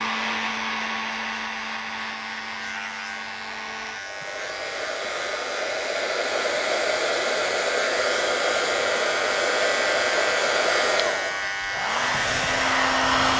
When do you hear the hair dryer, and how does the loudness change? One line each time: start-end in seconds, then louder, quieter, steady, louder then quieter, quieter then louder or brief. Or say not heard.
0.0-13.3 louder.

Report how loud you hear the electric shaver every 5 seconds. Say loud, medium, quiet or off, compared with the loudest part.
medium, loud, loud.